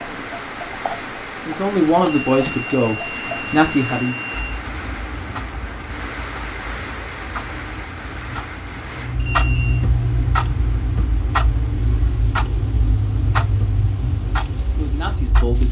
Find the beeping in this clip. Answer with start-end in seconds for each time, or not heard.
2.0-4.6, 9.2-9.8.